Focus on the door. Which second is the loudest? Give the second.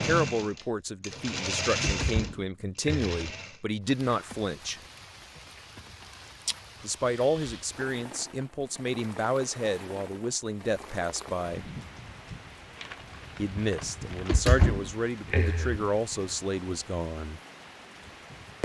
15 s.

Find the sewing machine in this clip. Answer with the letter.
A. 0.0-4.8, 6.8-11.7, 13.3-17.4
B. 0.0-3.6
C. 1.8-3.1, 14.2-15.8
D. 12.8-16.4
B.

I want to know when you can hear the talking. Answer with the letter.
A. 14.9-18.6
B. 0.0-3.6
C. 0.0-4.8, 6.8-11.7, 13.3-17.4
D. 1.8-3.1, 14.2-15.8
C.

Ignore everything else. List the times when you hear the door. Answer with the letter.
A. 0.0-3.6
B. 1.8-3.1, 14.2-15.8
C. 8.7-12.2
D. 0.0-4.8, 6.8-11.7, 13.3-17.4
B.